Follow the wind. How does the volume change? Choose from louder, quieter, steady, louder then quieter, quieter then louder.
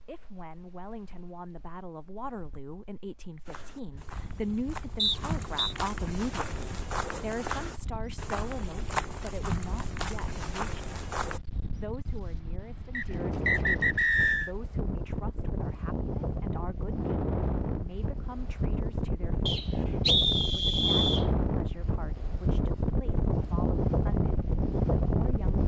louder.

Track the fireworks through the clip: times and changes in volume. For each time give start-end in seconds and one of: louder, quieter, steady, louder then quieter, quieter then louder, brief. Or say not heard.
not heard.